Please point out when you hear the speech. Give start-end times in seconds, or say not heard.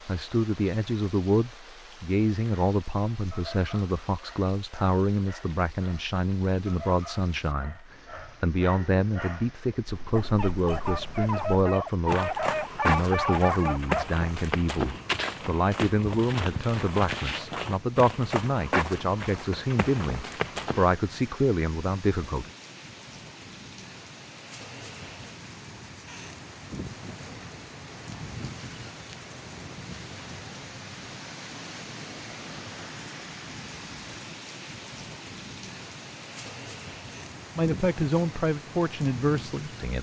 0.1-22.5, 37.5-39.9.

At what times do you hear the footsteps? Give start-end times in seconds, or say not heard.
9.8-20.9.